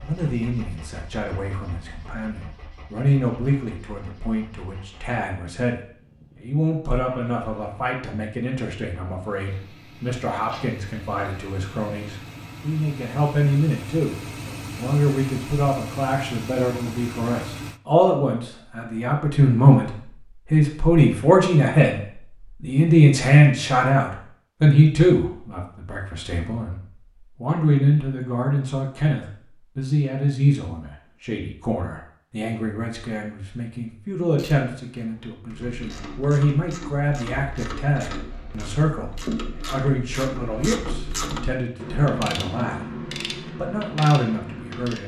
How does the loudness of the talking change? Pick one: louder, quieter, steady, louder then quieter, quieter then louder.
louder then quieter.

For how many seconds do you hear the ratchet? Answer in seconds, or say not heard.
11 s.